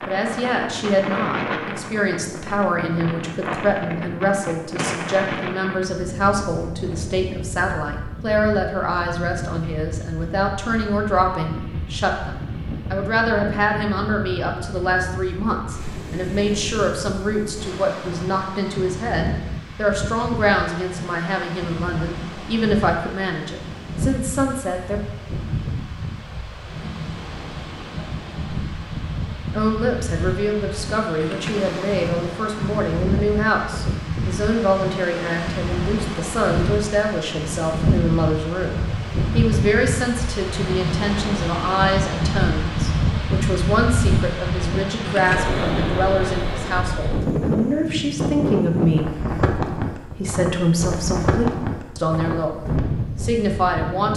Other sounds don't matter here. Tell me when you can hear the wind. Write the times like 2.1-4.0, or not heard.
0.0-54.1.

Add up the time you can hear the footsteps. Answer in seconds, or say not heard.
not heard.